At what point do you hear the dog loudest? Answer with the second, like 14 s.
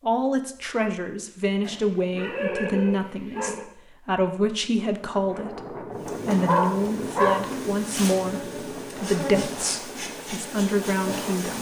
7 s.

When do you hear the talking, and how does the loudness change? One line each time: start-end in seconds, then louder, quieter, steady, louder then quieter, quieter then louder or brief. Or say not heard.
0.0-11.5 steady.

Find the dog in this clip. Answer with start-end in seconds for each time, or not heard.
1.6-3.6, 6.5-7.4.